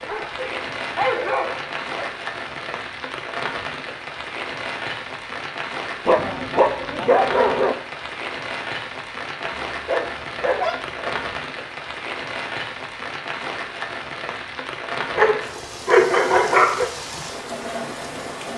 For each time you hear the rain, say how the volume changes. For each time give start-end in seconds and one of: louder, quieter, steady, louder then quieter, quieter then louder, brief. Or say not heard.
0.0-18.5 steady.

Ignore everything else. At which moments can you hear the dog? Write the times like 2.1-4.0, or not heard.
0.1-2.1, 6.0-7.8, 9.4-11.2, 15.2-16.9.